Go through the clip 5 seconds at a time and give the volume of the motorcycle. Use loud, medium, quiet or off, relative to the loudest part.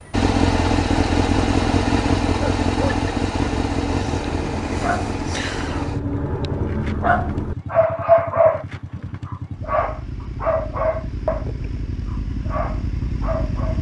loud, medium, medium.